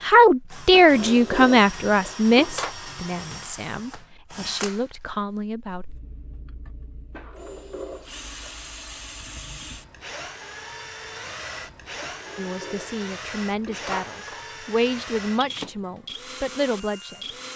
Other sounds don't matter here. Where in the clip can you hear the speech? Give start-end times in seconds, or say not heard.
0.0-5.8, 12.3-17.1.